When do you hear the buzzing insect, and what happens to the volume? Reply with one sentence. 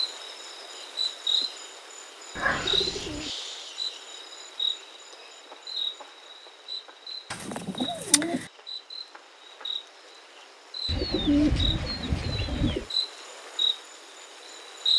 You can hear the buzzing insect from 0.0 to 14.9 s, getting quieter then louder.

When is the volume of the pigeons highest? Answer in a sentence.
The loudest moment of the pigeons is at 11 seconds.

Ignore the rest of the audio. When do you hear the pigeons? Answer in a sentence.
The pigeons can be heard from 2.4 to 3.3 s, from 7.3 to 8.4 s and from 10.8 to 12.8 s.